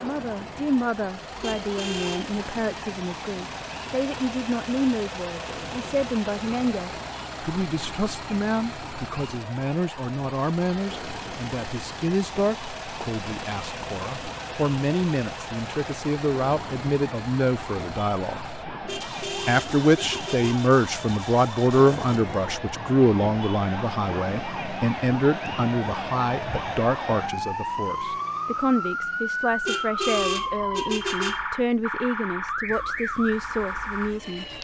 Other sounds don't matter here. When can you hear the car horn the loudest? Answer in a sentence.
The volume of the car horn peaks at 30 seconds.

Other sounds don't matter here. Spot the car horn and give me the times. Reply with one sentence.
You can hear the car horn from 1.4 to 2.4 s, from 18.9 to 20.6 s and from 29.6 to 31.4 s.